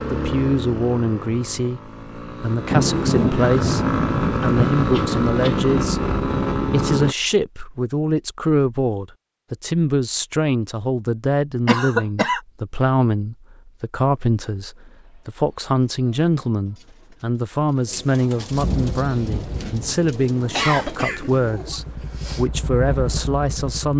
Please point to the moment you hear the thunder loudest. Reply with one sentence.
The volume of the thunder peaks at 3 seconds.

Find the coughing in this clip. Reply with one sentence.
The coughing can be heard from 4.9 to 5.7 s, from 11.7 to 12.4 s and from 20.6 to 22.4 s.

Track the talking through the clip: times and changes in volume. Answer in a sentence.
You can hear the talking from 0.1 to 23.9 s, at a steady volume.